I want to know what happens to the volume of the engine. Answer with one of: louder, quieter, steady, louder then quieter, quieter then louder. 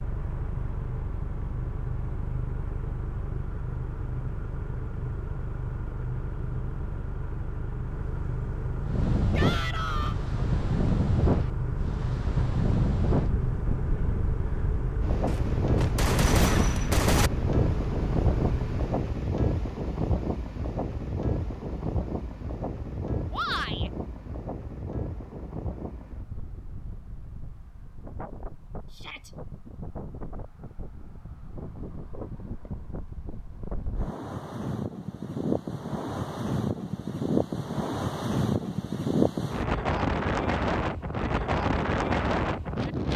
steady.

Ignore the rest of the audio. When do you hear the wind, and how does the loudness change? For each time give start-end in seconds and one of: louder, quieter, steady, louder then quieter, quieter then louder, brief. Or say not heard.
8.8-43.1 quieter then louder.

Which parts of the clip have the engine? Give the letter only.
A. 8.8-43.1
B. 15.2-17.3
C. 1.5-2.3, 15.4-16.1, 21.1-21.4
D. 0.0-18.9
D.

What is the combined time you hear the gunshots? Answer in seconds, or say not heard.
2 s.